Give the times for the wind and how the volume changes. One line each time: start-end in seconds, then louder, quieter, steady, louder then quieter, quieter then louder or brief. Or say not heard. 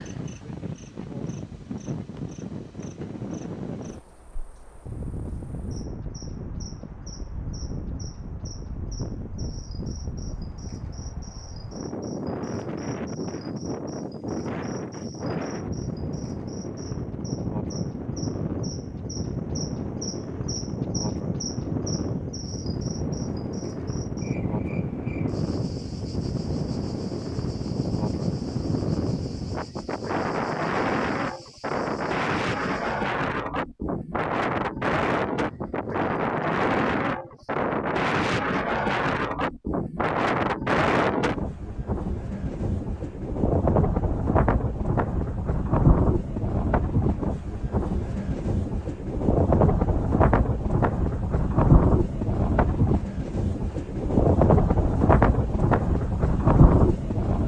0.0-57.4 louder.